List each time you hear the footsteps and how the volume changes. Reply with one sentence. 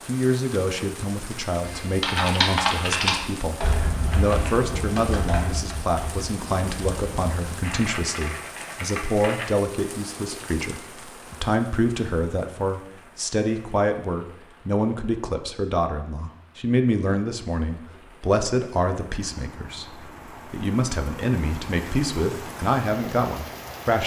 You can't hear the footsteps here.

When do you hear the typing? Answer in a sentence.
The typing can be heard from 1.6 to 9.6 s.